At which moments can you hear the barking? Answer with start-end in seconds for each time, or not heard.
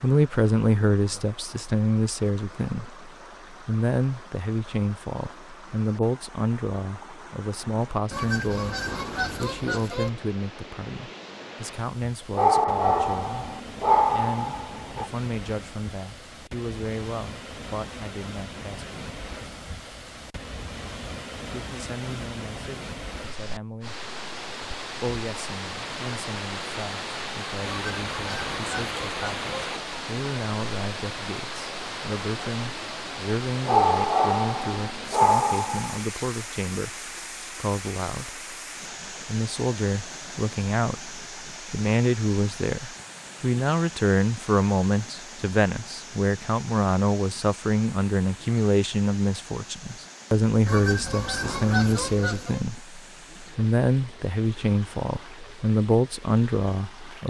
12.3-15.1, 33.6-36.0.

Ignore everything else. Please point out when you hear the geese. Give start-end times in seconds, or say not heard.
8.1-10.1, 27.6-29.6, 50.6-52.6.